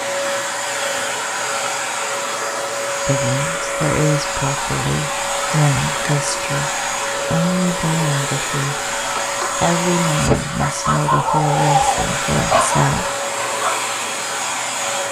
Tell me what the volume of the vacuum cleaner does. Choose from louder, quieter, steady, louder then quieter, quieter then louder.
steady.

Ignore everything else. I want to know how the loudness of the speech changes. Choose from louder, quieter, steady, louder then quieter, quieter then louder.
steady.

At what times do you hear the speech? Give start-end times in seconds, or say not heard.
3.0-13.1.